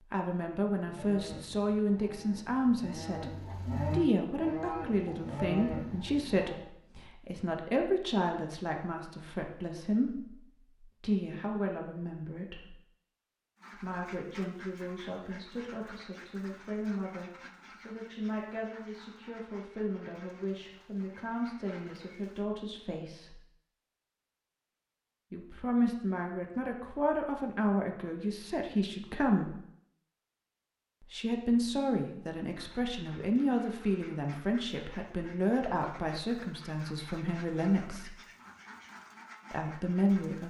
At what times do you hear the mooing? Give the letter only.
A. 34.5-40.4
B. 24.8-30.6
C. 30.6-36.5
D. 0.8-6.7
D.